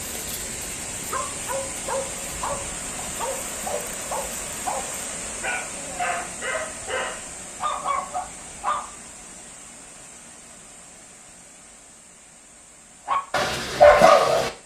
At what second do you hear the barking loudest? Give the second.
14 s.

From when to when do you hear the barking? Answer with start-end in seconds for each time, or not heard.
0.0-8.8, 13.1-14.5.